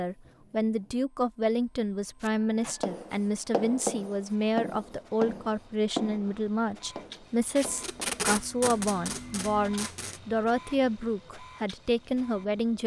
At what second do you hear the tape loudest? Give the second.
8 s.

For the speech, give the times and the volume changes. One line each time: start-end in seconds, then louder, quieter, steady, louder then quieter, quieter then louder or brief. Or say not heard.
0.0-12.8 steady.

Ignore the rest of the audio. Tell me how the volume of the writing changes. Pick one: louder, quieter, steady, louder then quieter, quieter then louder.
quieter.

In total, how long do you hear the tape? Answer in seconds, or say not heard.
3 s.